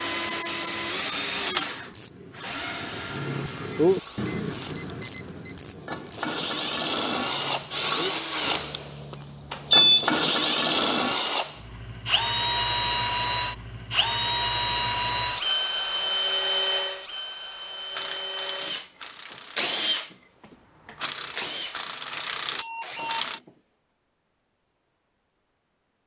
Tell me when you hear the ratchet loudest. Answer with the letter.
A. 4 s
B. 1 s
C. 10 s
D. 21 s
A.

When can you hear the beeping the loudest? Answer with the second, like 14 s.
10 s.